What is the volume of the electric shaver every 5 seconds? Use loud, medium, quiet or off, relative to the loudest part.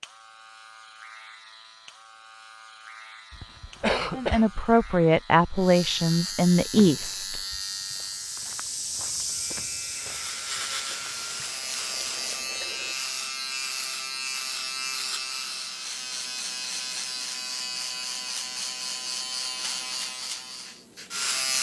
quiet, medium, loud, loud, loud.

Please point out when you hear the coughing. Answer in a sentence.
You can hear the coughing from 3.3 to 4.6 s.